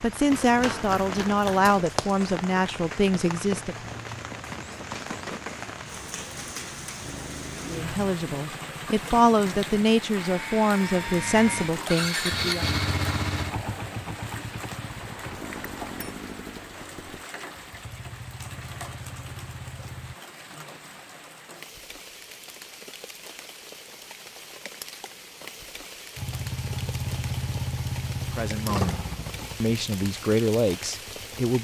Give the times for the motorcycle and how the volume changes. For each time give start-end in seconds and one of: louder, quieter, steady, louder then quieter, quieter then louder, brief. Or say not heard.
7.0-20.1 louder then quieter
26.1-31.4 quieter.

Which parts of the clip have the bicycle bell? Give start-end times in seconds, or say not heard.
14.9-16.1.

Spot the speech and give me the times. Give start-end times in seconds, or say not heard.
0.0-3.9, 7.7-12.7, 28.3-29.0, 29.6-31.6.